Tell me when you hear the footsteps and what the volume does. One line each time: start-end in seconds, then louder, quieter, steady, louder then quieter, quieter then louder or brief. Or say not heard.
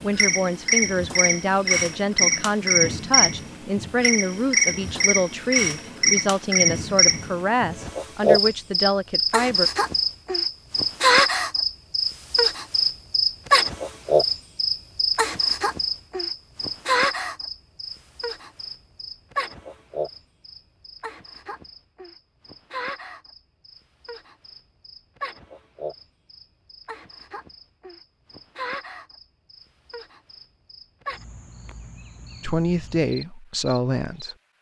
not heard.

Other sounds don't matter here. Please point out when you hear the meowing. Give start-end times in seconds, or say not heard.
not heard.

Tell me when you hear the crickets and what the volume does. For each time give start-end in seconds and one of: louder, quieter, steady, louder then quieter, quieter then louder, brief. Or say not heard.
0.0-34.4 quieter.